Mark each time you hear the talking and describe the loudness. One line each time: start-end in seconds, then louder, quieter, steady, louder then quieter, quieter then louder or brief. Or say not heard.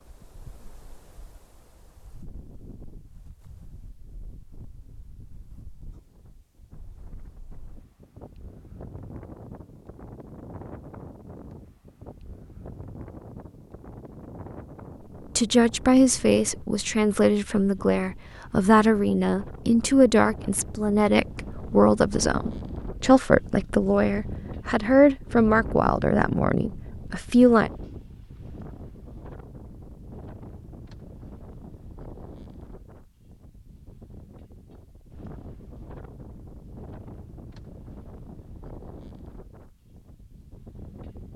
15.3-27.7 steady.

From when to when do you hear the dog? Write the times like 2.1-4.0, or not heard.
not heard.